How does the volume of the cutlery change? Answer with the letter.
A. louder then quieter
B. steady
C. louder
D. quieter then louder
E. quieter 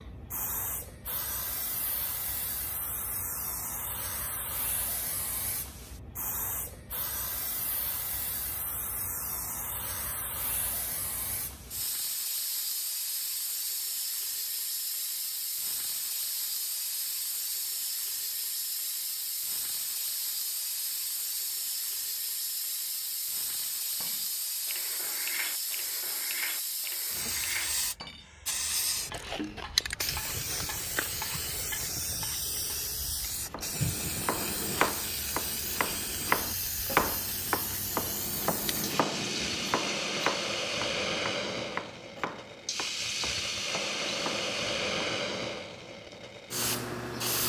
B.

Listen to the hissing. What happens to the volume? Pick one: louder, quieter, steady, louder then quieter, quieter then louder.
louder.